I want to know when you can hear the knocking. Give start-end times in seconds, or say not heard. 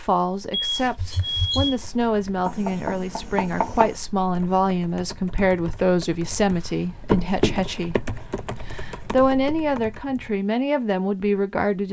2.5-4.0, 7.1-7.8.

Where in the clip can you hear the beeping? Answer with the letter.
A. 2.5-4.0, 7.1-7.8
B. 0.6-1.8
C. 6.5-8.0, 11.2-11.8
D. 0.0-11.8
B.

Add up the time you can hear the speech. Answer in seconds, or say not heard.
12 s.